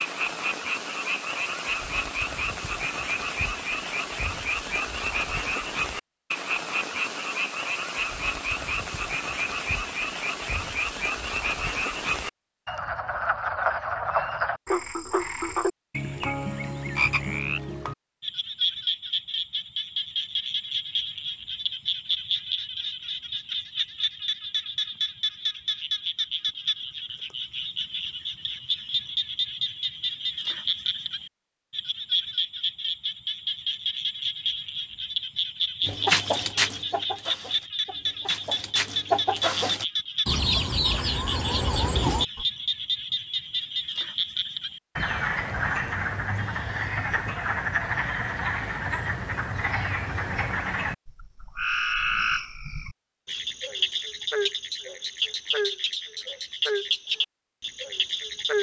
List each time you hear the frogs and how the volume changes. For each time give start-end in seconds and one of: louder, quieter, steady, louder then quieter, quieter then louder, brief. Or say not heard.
0.0-58.5 steady.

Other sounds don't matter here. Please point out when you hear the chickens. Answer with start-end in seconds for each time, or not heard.
35.9-42.5.